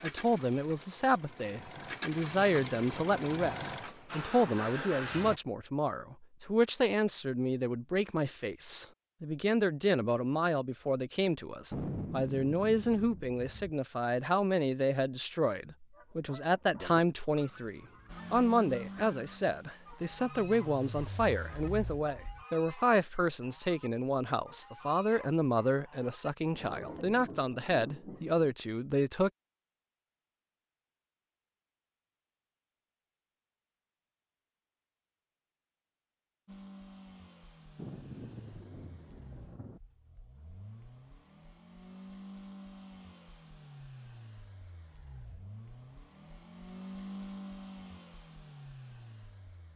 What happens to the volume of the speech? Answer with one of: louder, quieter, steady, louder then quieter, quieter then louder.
steady.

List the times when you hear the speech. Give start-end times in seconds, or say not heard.
0.0-29.3.